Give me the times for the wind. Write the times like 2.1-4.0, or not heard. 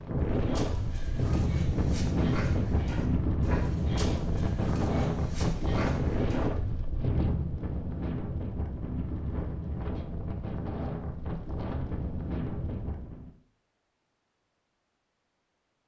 0.0-13.3.